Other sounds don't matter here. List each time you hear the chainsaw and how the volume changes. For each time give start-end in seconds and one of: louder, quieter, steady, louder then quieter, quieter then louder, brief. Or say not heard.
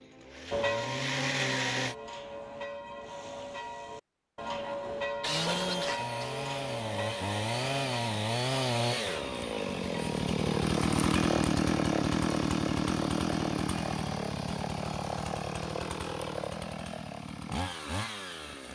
0.0-1.9 brief
5.2-18.7 louder then quieter.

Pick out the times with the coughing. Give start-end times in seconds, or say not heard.
5.2-6.2.